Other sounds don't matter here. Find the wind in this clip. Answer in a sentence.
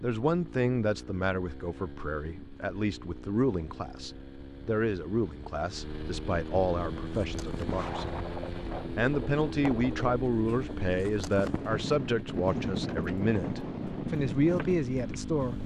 The wind can be heard from 7.0 to 15.6 s.